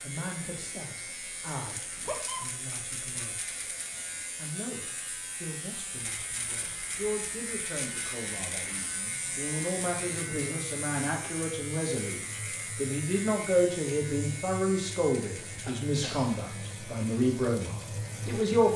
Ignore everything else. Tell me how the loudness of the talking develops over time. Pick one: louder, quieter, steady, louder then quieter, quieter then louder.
louder.